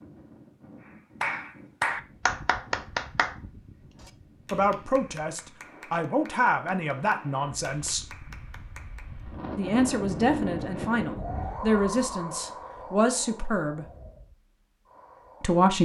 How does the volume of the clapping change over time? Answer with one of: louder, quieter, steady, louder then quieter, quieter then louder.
quieter.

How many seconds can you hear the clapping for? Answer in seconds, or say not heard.
8 s.